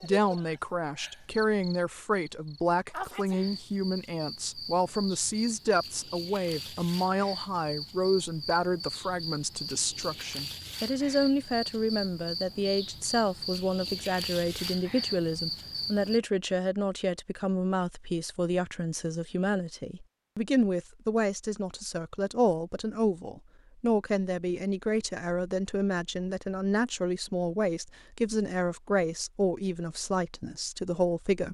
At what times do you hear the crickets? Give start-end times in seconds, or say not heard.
0.0-16.2.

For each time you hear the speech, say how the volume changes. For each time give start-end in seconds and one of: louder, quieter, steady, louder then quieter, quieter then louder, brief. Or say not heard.
0.0-31.4 steady.